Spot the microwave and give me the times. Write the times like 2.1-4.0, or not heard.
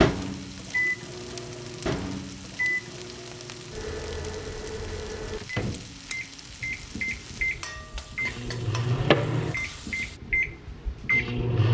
0.0-11.6.